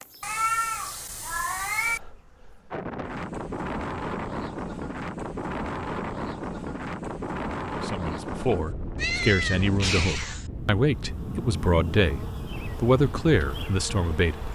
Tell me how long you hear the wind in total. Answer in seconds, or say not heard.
12 s.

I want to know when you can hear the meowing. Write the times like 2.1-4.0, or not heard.
0.2-2.0, 8.9-10.4.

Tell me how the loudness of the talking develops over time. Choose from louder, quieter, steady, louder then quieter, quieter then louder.
louder.